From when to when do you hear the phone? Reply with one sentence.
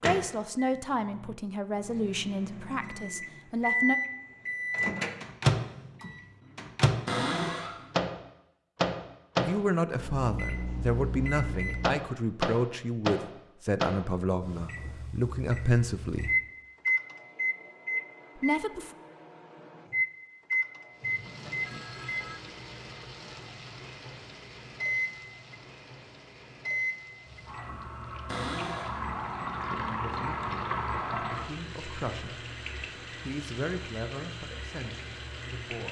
The phone can be heard from 21.0 to 22.4 s.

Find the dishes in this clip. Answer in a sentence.
The dishes can't be heard in this clip.